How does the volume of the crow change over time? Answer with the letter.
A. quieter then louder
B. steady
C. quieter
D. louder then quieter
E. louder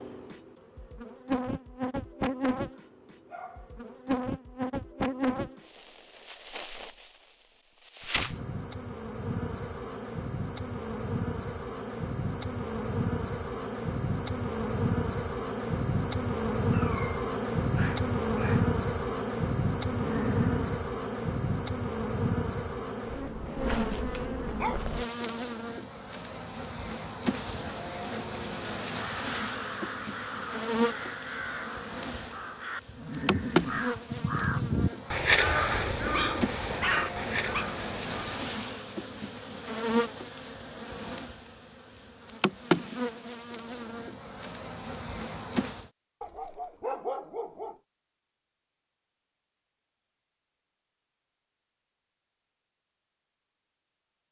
D.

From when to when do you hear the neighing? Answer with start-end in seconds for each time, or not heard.
20.0-20.9, 33.0-34.5.